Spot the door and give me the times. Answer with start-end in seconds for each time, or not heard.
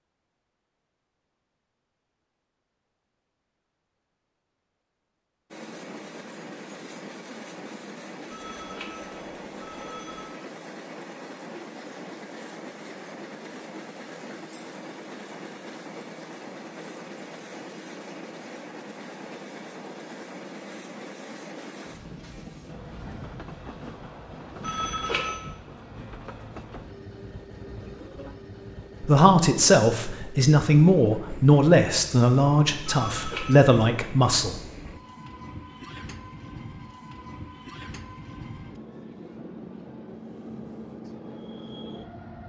not heard.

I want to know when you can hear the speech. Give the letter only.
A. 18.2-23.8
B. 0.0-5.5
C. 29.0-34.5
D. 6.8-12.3
C.